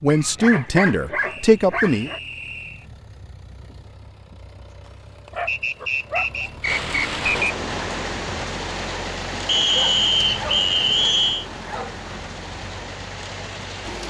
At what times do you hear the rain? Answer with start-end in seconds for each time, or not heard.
6.6-14.0.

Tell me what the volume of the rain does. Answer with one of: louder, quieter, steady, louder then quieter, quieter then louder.
quieter.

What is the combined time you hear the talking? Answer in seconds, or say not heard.
2 s.